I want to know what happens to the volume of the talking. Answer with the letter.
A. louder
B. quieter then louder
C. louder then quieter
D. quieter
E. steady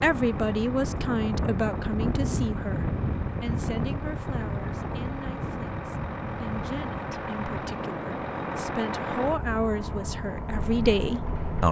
B.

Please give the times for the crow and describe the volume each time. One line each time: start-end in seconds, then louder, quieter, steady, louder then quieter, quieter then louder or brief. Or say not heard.
not heard.